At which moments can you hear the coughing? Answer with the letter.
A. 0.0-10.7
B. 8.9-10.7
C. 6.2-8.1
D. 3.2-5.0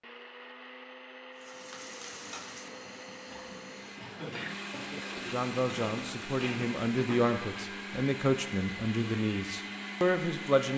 D.